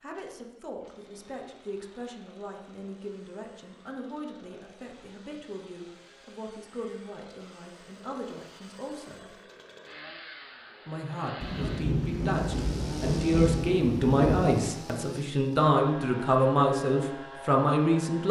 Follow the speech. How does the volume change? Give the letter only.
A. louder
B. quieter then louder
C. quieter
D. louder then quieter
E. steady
A.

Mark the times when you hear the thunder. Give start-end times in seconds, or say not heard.
11.4-14.6.